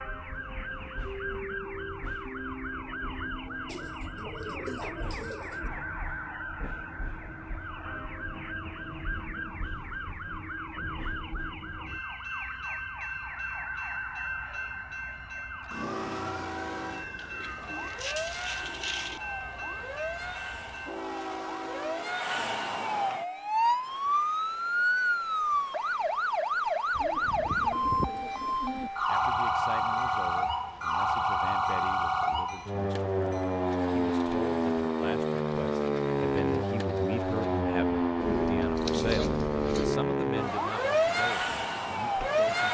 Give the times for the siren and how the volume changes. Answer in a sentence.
The siren can be heard from 0.0 to 42.6 s, getting louder.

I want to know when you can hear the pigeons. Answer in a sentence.
You can hear the pigeons from 3.6 to 5.7 s, from 17.1 to 19.2 s, from 26.9 to 28.9 s and from 38.2 to 40.0 s.